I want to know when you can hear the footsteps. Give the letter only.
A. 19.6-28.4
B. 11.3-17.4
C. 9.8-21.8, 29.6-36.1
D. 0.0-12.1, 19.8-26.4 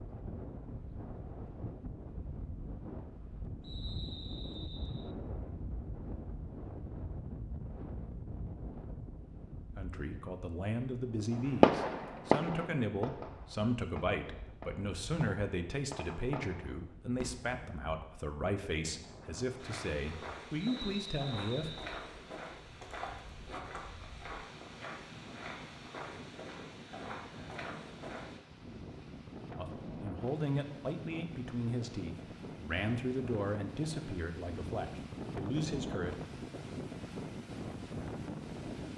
A.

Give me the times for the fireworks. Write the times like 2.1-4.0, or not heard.
11.3-17.4.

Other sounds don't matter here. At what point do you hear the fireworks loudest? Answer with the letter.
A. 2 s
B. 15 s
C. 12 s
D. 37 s
C.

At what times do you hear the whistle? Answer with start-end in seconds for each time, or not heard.
3.6-5.2, 20.6-22.1.